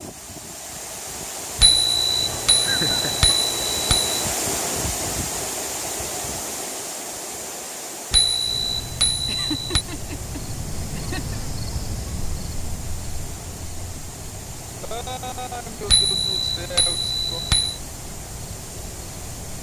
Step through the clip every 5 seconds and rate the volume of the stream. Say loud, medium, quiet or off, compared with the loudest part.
loud, loud, medium, medium.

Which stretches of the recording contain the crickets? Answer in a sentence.
You can hear the crickets from 8.4 to 19.5 s.